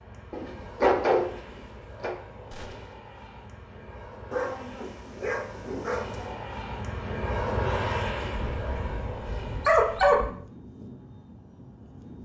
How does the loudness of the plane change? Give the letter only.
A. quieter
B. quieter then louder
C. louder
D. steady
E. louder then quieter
E.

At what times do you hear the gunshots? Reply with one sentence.
The gunshots can be heard from 2.5 to 3.0 s.